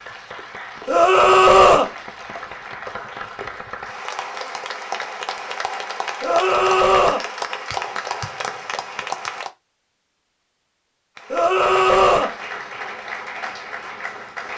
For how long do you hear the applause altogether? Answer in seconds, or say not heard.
13 s.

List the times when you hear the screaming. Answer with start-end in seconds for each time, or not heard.
0.8-1.9, 6.2-7.2, 11.3-12.3.